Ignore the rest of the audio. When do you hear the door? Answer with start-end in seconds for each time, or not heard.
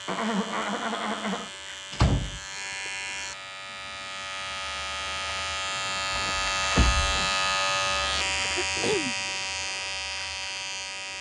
1.9-2.4, 6.1-7.2.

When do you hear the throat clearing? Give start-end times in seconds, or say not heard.
0.1-1.5, 8.4-9.2.